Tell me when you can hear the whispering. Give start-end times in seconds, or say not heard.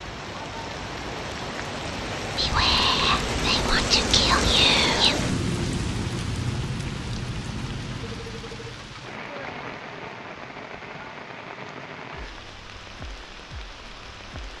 2.4-5.2.